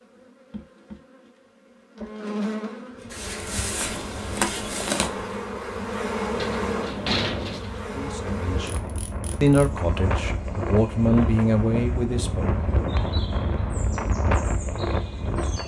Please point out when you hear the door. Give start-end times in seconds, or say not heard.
6.3-7.8.